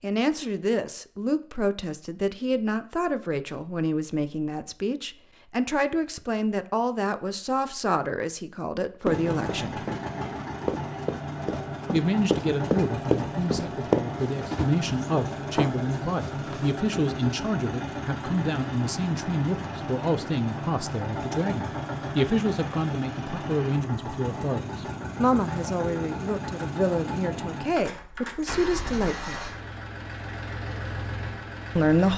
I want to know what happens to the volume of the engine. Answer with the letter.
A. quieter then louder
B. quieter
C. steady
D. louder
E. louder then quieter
C.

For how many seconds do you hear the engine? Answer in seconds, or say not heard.
23 s.